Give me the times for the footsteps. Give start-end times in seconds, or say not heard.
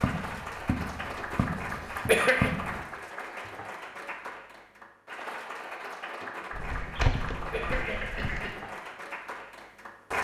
0.0-2.9, 6.5-8.4.